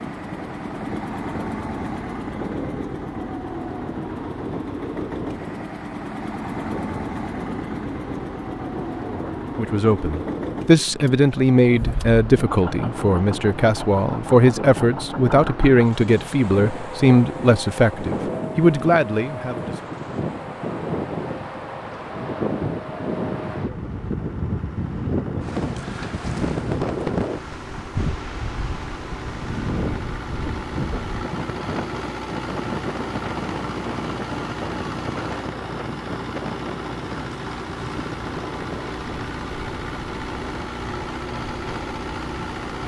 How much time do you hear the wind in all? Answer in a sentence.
The wind can be heard for 43 seconds in total.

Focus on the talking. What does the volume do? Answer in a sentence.
The loudness of the talking stays about the same.